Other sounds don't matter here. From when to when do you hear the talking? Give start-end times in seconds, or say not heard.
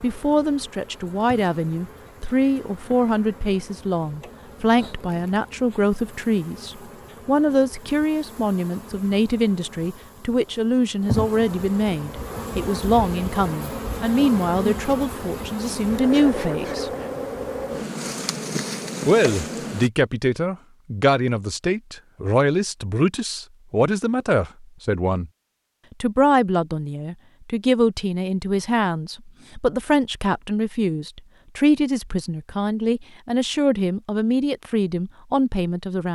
0.0-16.9, 19.1-25.3, 26.0-36.1.